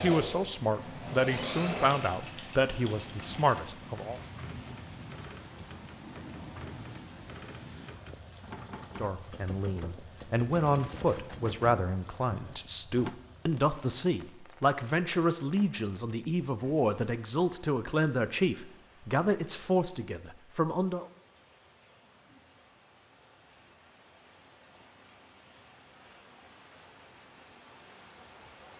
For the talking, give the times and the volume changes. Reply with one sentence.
The talking can be heard from 0.0 to 4.2 s, at a steady volume; and from 8.9 to 21.1 s, at a steady volume.